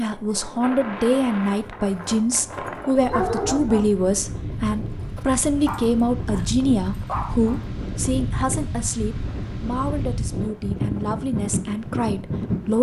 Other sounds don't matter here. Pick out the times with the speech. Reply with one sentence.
You can hear the speech from 0.0 to 12.7 s.